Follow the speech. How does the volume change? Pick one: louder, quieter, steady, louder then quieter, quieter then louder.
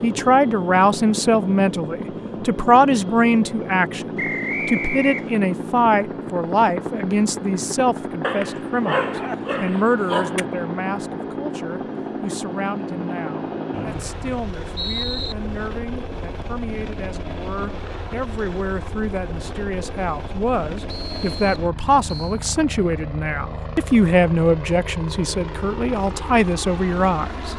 quieter then louder.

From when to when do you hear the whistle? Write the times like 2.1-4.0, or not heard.
4.2-5.3, 13.7-15.3, 20.9-22.4.